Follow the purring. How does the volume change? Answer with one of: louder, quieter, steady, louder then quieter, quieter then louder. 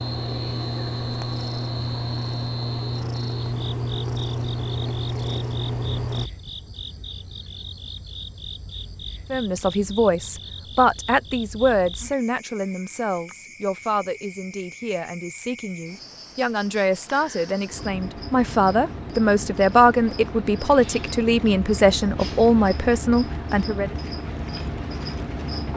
steady.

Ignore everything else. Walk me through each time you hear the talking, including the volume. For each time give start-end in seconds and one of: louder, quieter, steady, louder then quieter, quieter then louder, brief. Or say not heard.
9.3-23.9 quieter then louder.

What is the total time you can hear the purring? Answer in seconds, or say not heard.
6 s.